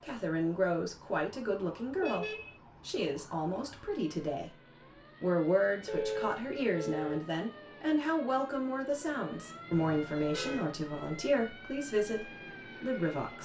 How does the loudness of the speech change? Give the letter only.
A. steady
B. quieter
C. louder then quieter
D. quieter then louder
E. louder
A.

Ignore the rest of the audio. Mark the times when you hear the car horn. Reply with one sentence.
You can hear the car horn from 1.9 to 2.5 s, from 5.8 to 7.2 s and from 9.7 to 10.7 s.